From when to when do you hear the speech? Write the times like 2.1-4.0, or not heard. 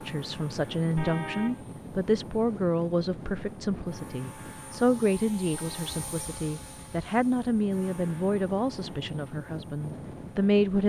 0.1-10.8.